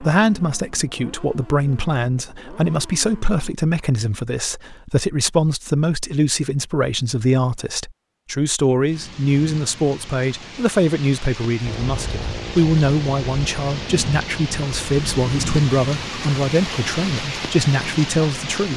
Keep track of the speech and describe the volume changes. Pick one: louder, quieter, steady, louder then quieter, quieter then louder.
steady.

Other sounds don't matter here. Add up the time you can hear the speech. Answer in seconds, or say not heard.
19 s.